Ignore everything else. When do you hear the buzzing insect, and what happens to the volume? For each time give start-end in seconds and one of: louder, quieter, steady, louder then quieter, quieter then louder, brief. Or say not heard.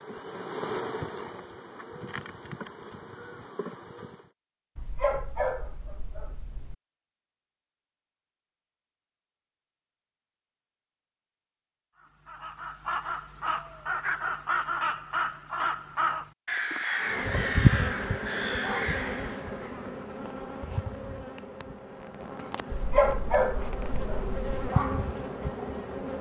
0.0-4.3 quieter
17.0-26.1 quieter then louder.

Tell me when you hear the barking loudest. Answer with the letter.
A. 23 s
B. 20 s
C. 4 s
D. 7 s
A.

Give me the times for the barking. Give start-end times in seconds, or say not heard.
4.8-6.8, 22.7-24.7.